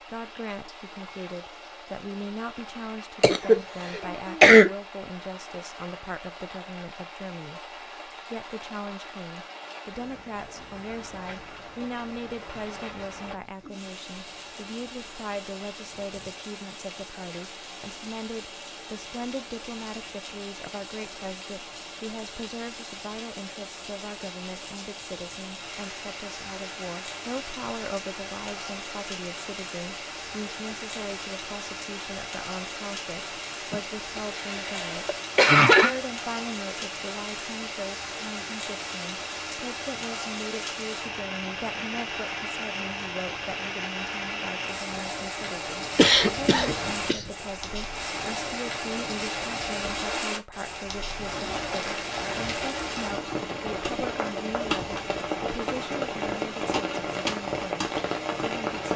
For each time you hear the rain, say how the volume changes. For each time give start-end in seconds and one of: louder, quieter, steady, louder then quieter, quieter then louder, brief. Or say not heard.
0.0-58.9 louder.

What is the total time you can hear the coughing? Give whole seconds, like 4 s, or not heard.
5 s.